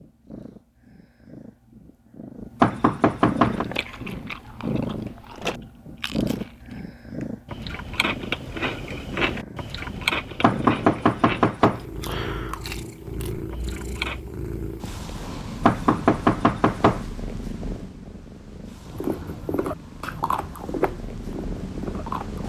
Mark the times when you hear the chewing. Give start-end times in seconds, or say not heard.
3.4-14.2, 18.9-22.4.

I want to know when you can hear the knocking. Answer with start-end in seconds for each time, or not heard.
2.6-3.6, 10.4-11.8, 15.7-17.1.